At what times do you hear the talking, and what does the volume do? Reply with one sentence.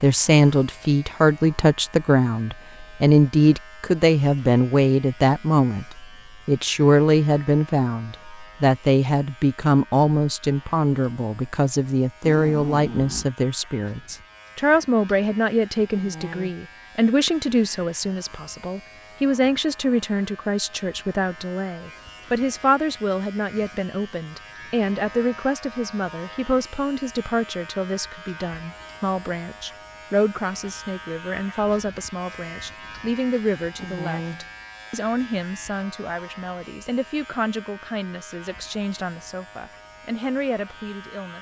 You can hear the talking from 0.0 to 41.3 s, getting quieter.